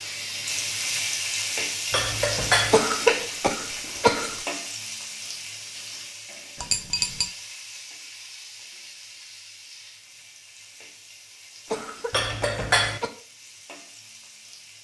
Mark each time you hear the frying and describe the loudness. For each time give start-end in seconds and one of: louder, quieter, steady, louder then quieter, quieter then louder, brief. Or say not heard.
0.0-14.7 quieter.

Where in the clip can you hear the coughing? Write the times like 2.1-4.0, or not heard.
2.7-4.4, 11.7-13.1.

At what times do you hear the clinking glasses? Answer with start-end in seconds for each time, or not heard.
1.9-2.8, 6.6-7.3, 12.1-13.0.